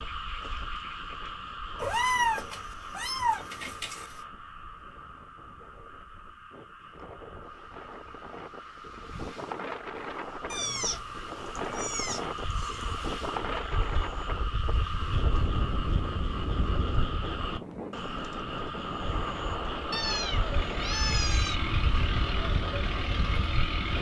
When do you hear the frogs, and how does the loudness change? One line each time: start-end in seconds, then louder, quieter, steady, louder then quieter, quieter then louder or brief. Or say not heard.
0.0-23.9 quieter then louder.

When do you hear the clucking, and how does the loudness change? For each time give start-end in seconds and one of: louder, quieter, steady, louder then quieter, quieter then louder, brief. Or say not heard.
not heard.